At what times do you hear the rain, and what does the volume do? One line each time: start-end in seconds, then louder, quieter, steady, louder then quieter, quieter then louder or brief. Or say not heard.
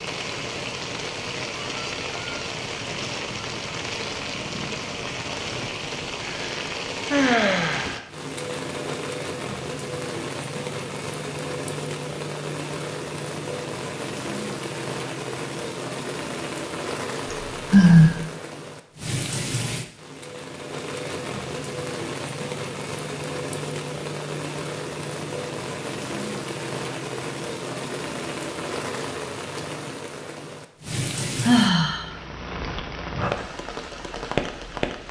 0.0-35.0 steady.